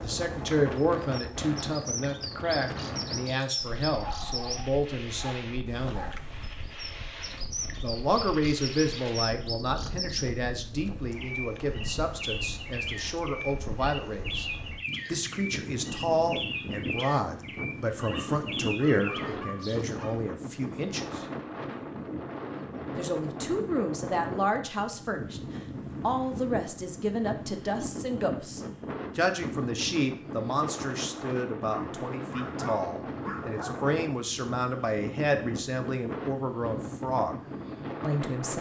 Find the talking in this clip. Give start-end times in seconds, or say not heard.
0.0-6.2, 7.8-21.2, 22.9-37.4, 38.0-38.5.